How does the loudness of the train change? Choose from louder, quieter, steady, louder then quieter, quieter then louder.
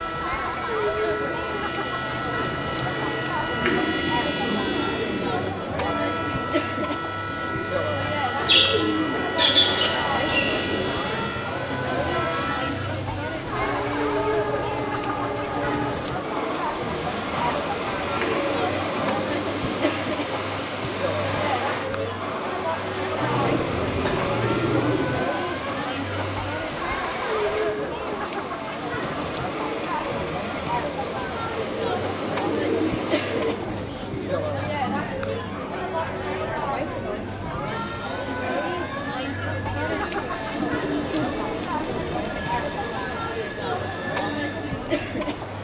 quieter.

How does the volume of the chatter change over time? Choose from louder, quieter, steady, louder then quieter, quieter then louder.
steady.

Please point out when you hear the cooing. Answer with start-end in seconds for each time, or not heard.
3.6-5.6, 8.3-11.2, 18.1-19.9, 23.2-25.2, 31.6-34.0, 40.5-42.5.